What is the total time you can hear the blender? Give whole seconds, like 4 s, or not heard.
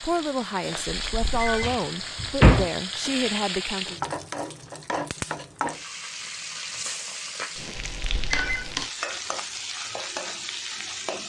not heard.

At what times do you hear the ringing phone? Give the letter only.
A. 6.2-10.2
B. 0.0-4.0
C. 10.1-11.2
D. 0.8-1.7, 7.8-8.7
D.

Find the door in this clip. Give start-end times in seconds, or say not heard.
1.6-2.7.